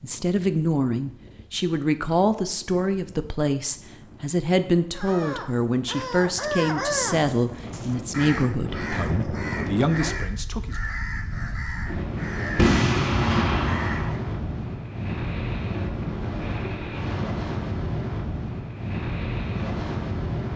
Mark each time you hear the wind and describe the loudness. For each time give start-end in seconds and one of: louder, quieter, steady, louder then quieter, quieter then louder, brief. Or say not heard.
0.0-20.5 louder.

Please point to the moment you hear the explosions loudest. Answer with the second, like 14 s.
13 s.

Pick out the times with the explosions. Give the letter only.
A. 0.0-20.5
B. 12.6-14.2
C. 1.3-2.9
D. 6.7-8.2
B.